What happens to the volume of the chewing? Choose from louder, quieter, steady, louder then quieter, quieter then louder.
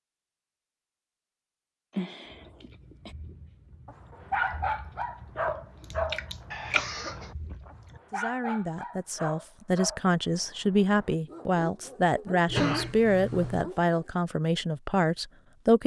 louder.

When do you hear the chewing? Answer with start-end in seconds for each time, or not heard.
2.2-8.0.